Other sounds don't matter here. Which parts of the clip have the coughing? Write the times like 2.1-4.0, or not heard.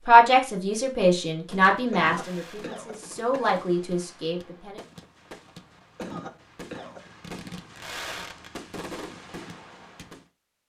1.9-3.5, 5.8-7.0.